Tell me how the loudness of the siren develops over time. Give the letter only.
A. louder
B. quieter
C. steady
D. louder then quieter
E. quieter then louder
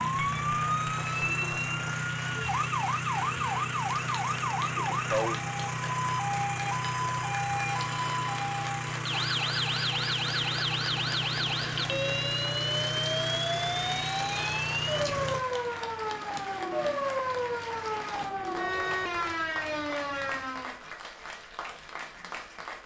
C.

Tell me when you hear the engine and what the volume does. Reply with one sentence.
The engine can be heard from 0.0 to 15.4 s, at a steady volume.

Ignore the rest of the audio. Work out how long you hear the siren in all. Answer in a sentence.
The siren can be heard for 21 seconds in total.